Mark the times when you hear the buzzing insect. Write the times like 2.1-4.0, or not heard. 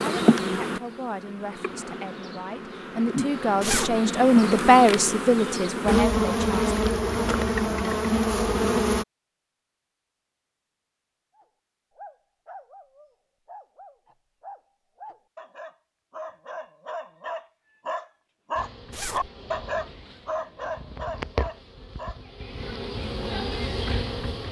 0.0-9.1, 18.6-24.4.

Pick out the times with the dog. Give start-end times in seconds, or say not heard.
11.3-22.2.